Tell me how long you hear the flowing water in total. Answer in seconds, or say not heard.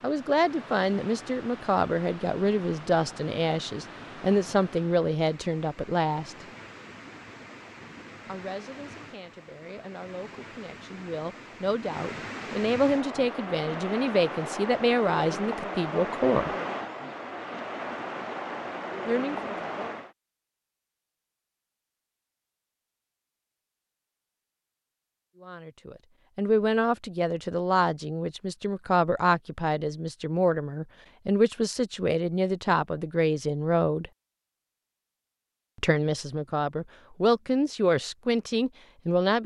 20 s.